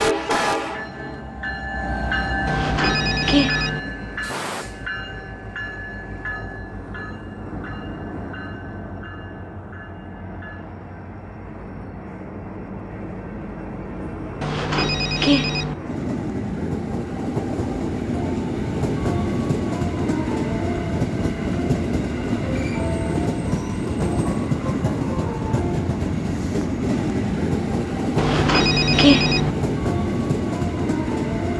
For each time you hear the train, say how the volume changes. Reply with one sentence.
The train can be heard from 0.0 to 31.5 s, getting quieter then louder.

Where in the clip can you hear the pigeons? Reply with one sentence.
The pigeons can't be heard in this clip.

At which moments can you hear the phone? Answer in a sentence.
You can hear the phone from 2.5 to 3.8 s, from 14.4 to 15.8 s and from 28.1 to 29.5 s.